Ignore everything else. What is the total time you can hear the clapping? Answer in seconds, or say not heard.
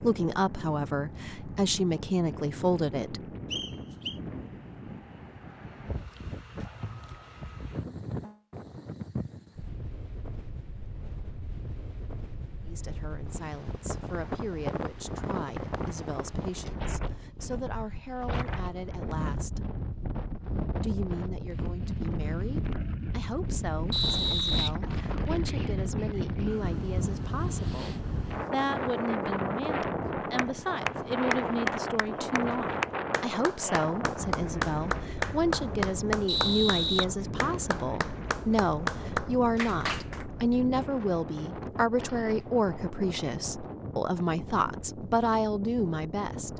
10 s.